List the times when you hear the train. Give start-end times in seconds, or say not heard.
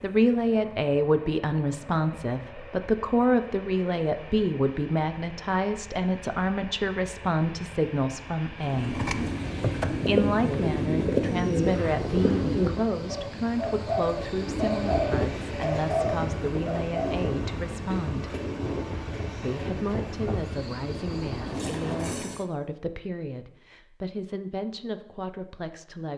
0.0-22.4.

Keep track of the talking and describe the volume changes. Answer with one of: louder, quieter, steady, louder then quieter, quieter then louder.
quieter.